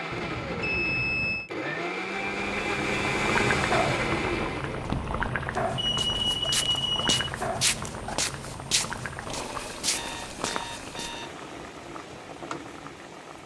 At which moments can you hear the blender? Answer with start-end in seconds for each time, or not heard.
0.0-5.0.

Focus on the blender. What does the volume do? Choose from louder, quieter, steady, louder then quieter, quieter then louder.
louder.